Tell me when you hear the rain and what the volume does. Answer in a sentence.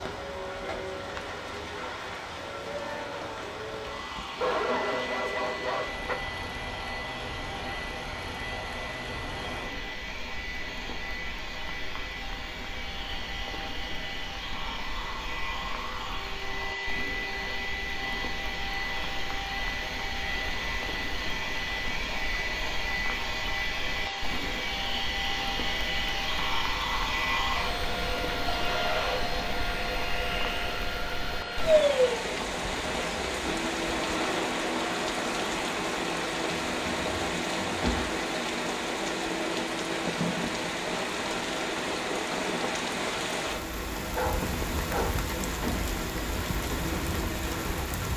You can hear the rain from 0.0 to 48.1 s, getting louder.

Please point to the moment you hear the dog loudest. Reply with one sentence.
The volume of the dog peaks at 5 seconds.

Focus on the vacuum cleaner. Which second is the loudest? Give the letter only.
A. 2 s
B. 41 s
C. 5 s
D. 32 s
D.